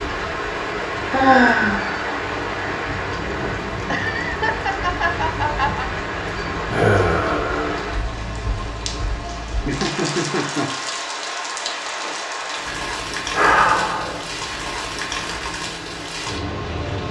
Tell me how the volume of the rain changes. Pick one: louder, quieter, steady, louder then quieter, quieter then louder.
steady.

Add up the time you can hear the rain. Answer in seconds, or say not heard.
17 s.